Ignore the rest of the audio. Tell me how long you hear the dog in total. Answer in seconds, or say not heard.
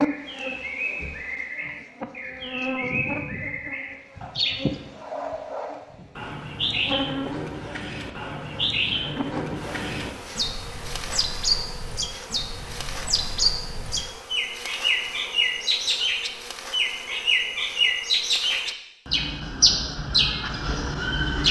not heard.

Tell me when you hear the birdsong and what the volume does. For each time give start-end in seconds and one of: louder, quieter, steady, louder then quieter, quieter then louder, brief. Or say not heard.
0.0-21.4 louder.